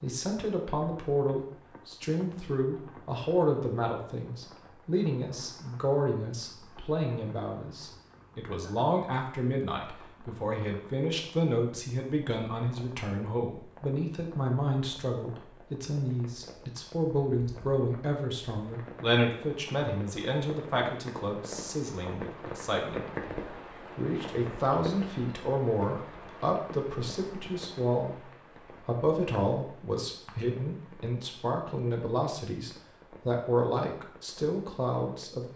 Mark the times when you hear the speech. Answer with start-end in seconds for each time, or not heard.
0.0-23.1, 23.8-35.5.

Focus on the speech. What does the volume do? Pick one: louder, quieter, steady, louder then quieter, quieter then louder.
steady.